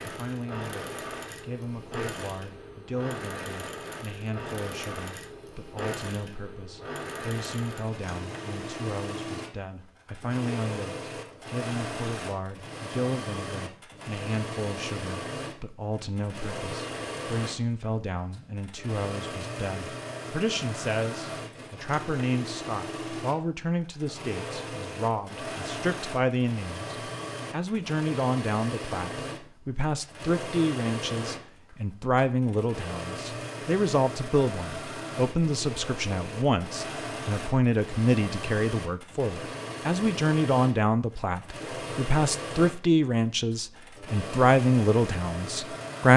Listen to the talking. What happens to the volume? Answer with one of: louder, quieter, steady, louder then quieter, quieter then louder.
louder.